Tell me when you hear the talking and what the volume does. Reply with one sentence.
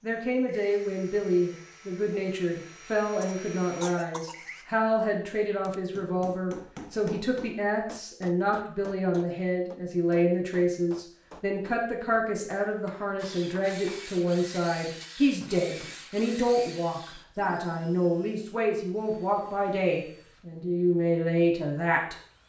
The talking can be heard from 0.0 to 22.1 s, at a steady volume.